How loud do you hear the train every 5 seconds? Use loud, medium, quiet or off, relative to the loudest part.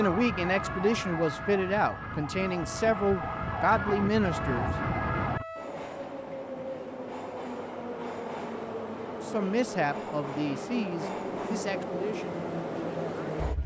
medium, loud, loud.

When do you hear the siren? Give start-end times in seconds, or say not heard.
0.0-5.5.